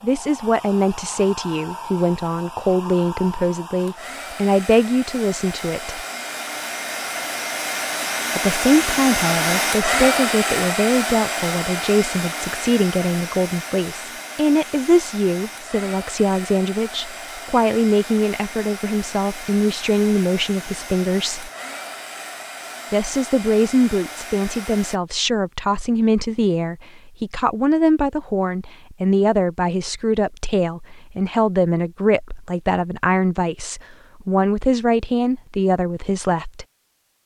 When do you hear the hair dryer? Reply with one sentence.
You can hear the hair dryer from 0.0 to 25.0 s.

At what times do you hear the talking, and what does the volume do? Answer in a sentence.
The talking can be heard from 0.0 to 6.0 s, at a steady volume; from 8.3 to 21.5 s, at a steady volume; and from 22.9 to 36.6 s, at a steady volume.